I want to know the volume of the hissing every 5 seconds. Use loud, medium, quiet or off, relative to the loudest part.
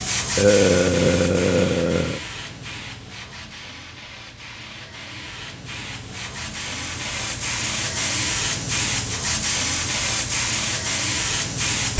medium, loud, loud.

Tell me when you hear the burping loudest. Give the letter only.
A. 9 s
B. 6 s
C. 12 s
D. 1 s
D.